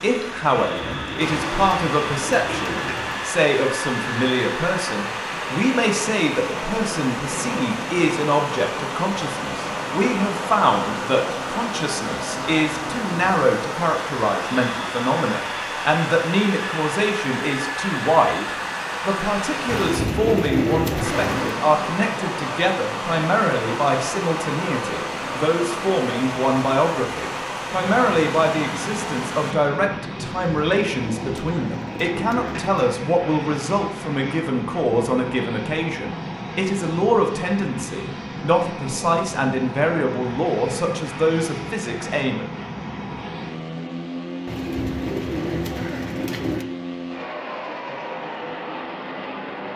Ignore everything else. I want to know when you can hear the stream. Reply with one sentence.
You can hear the stream from 0.0 to 29.6 s.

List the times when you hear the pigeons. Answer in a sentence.
You can hear the pigeons from 0.5 to 3.2 s, from 19.6 to 21.6 s, from 30.2 to 32.8 s and from 44.5 to 46.6 s.